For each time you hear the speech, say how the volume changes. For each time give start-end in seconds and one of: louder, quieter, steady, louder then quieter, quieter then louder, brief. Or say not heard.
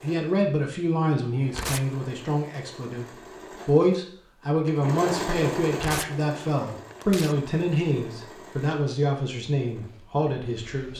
0.0-10.9 steady.